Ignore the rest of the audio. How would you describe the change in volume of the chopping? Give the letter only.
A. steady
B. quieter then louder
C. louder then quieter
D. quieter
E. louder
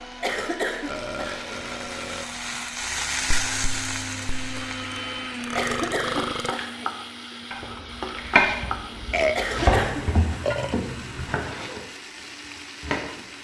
D.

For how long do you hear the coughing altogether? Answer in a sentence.
You can hear the coughing for 4 seconds altogether.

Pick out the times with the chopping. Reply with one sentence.
The chopping can be heard from 7.5 to 13.2 s.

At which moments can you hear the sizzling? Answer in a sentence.
You can hear the sizzling from 0.0 to 13.3 s.